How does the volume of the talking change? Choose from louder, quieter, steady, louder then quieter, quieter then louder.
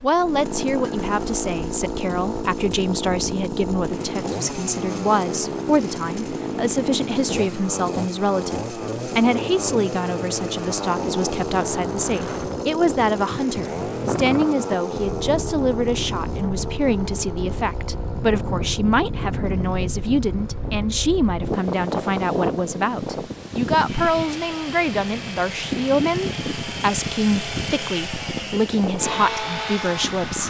steady.